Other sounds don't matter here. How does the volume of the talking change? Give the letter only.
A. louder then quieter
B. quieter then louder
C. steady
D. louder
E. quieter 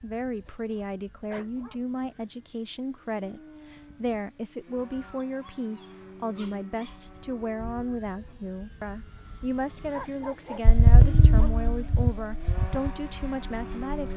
C.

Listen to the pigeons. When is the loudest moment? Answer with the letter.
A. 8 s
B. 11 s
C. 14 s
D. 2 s
B.